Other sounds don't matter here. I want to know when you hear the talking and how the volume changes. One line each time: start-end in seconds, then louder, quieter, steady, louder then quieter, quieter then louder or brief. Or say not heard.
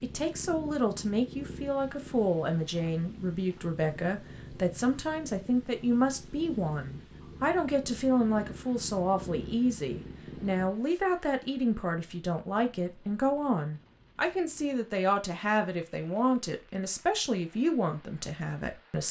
0.0-19.0 steady.